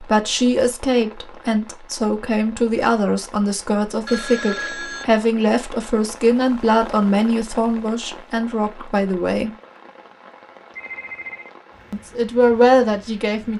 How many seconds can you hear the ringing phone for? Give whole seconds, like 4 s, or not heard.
2 s.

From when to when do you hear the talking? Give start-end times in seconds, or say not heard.
0.0-9.5, 11.9-13.5.